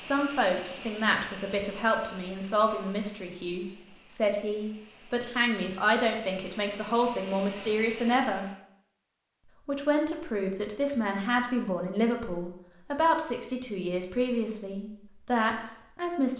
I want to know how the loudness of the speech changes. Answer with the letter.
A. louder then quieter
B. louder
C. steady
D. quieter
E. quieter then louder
C.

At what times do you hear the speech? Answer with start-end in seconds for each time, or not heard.
0.0-8.4, 9.7-16.3.